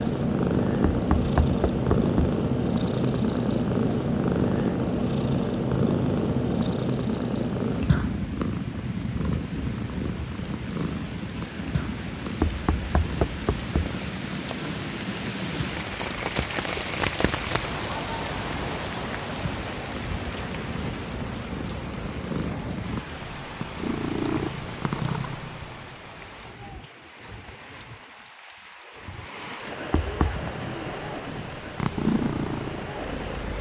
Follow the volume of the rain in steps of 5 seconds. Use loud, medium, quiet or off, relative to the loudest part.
quiet, quiet, medium, loud, medium, medium, medium.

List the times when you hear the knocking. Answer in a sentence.
The knocking can be heard from 0.9 to 2.3 s, from 12.4 to 13.9 s and from 29.9 to 30.6 s.